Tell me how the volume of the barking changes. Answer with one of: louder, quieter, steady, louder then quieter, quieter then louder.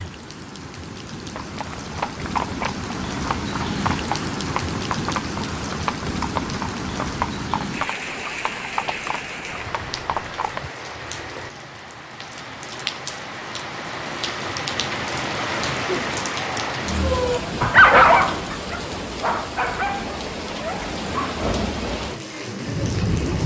louder then quieter.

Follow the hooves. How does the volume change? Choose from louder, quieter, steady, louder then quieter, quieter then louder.
steady.